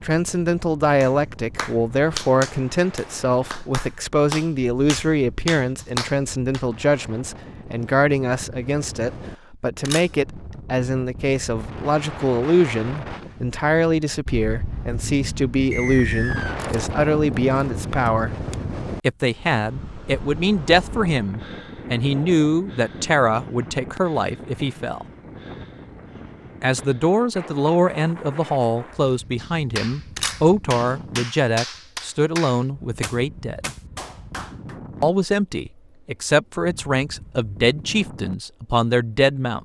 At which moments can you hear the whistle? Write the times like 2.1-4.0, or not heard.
15.7-16.6.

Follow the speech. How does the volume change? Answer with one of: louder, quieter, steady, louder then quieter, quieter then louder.
steady.